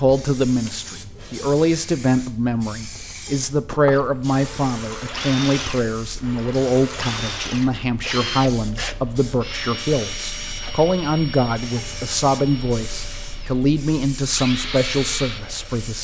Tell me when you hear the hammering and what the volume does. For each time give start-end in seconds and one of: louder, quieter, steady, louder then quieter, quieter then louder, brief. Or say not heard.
not heard.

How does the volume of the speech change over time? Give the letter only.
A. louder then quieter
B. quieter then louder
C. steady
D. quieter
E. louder
C.